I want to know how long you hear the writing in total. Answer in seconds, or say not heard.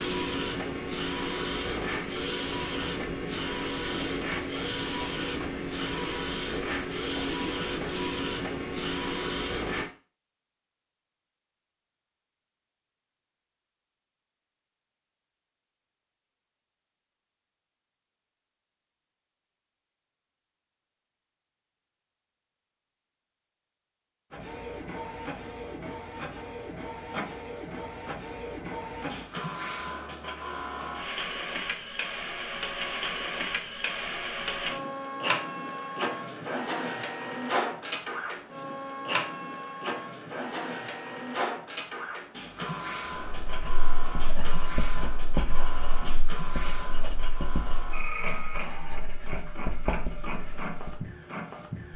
8 s.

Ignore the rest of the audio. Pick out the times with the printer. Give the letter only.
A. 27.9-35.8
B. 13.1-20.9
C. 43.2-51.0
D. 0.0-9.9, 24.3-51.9
D.